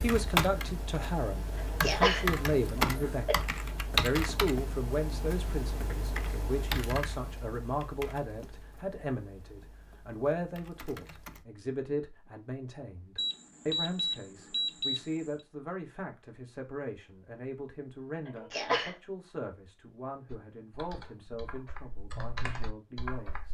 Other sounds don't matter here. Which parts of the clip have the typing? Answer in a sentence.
The typing can be heard from 0.0 to 11.4 s and from 20.2 to 23.4 s.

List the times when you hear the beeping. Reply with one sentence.
The beeping can be heard from 13.2 to 15.3 s.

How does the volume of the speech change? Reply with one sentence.
The loudness of the speech goes down.